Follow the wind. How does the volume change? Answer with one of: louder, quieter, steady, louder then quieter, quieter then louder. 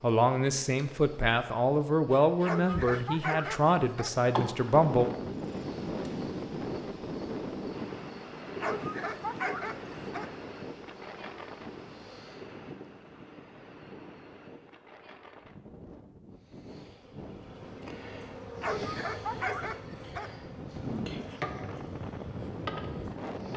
quieter then louder.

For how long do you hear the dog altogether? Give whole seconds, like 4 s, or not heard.
5 s.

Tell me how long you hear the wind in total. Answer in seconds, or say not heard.
19 s.